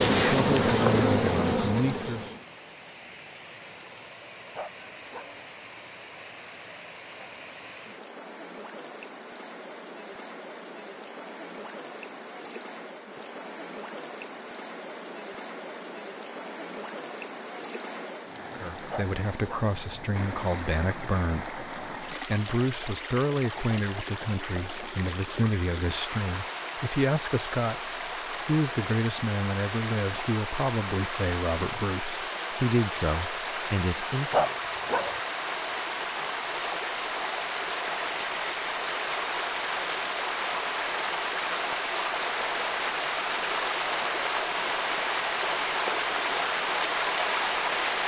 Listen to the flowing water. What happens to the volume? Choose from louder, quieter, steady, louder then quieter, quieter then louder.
louder.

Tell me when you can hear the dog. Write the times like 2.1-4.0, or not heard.
4.5-5.4, 18.9-19.8, 34.3-35.2.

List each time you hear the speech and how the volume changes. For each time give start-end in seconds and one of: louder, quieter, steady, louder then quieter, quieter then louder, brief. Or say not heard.
0.2-2.3 brief
18.6-34.5 steady.